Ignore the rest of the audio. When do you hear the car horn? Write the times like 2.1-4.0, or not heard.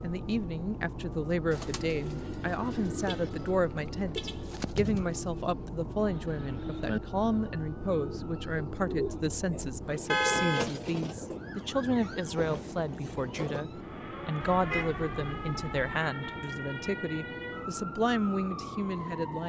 3.0-4.5, 10.1-11.2, 14.4-15.8.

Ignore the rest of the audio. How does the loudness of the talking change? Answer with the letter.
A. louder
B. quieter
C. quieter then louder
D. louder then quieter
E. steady
E.